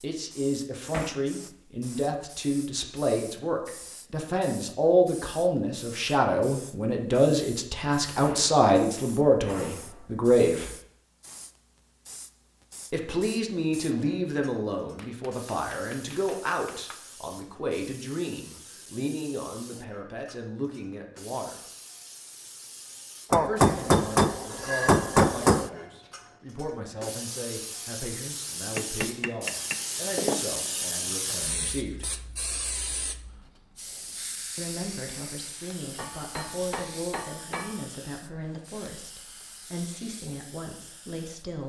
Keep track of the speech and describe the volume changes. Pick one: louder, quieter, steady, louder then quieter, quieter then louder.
quieter.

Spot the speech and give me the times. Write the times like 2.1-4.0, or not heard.
0.0-10.7, 12.9-21.6, 23.4-32.1, 34.5-41.6.